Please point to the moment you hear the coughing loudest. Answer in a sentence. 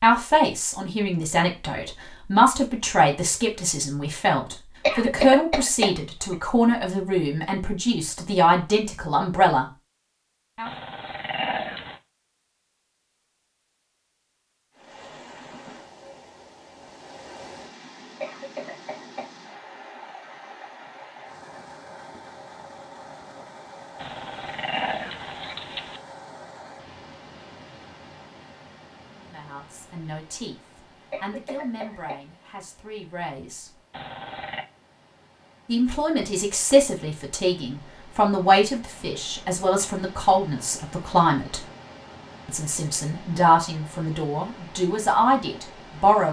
The loudest moment of the coughing is at 5 seconds.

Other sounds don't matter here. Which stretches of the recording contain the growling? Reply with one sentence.
The growling can be heard from 10.7 to 12.0 s, from 23.9 to 26.0 s and from 33.9 to 34.6 s.